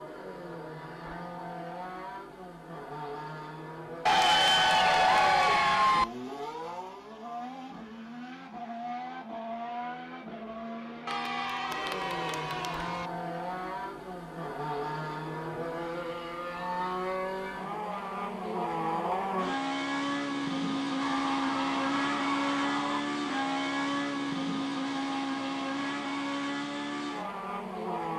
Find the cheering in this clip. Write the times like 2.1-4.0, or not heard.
4.0-6.0, 11.1-13.1, 21.0-23.0.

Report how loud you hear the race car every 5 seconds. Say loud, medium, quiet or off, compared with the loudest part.
medium, medium, medium, loud, loud, loud.